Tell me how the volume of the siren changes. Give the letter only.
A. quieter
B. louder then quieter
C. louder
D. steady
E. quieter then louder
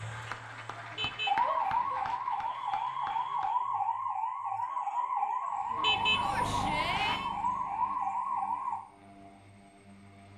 D.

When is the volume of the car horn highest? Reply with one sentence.
The volume of the car horn peaks at 6 seconds.